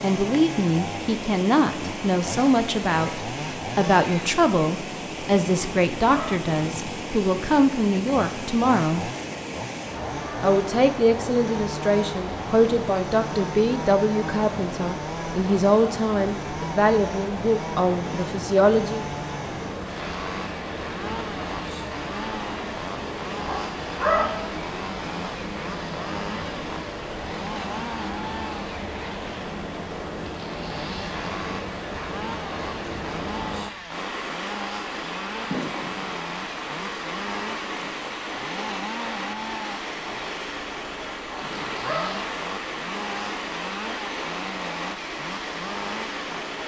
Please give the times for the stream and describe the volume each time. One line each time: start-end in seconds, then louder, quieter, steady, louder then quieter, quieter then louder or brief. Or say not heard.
0.0-46.6 steady.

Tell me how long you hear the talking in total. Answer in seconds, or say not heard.
18 s.